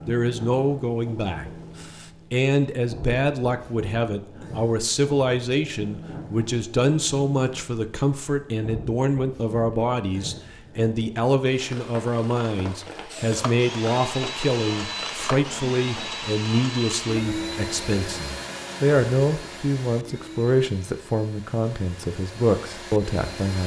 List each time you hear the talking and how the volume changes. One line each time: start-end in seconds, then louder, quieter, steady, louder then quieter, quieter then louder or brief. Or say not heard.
0.1-23.6 steady.